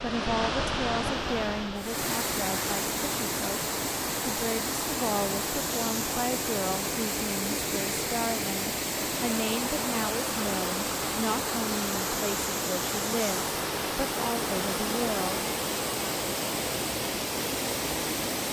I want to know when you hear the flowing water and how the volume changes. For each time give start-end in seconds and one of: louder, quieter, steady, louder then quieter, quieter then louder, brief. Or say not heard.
0.0-18.4 steady.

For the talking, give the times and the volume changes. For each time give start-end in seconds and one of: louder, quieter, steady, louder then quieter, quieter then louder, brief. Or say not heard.
0.0-15.5 steady.